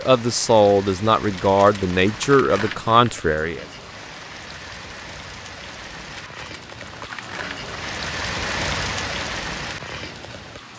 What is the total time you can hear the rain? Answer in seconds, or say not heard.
11 s.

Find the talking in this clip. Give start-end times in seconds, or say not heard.
0.0-3.6.